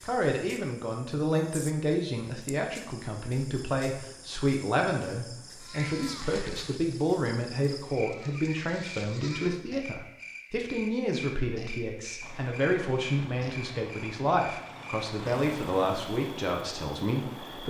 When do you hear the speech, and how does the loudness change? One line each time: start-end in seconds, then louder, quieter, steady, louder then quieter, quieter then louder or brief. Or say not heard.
0.0-17.6 steady.